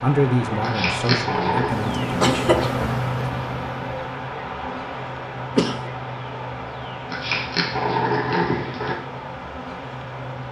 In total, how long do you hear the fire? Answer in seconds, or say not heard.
not heard.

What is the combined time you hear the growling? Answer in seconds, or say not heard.
3 s.